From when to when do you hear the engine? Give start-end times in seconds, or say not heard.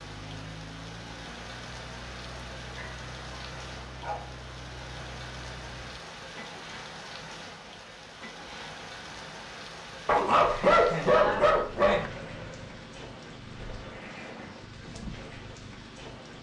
0.0-9.5, 11.9-14.6.